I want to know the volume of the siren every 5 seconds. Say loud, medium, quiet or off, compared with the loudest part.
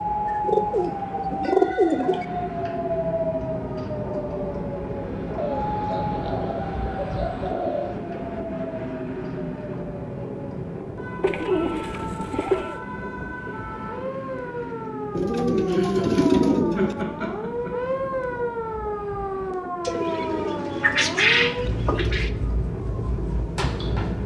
loud, medium, medium, loud, loud.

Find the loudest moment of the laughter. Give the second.
16 s.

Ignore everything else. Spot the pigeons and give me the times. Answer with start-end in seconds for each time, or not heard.
0.2-2.2, 5.3-8.0, 11.2-12.8, 15.2-16.9, 19.9-22.3.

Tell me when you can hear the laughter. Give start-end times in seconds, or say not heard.
15.7-18.3.